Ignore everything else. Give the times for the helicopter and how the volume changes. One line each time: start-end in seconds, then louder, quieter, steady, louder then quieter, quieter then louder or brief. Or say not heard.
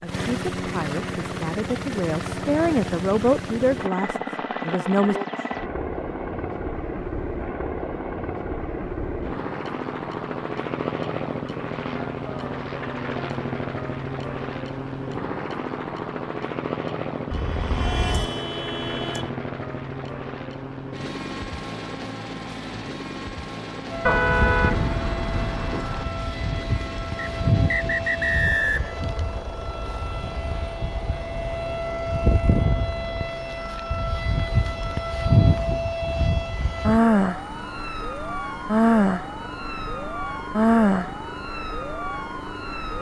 0.0-42.9 quieter.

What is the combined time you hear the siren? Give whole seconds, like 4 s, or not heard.
19 s.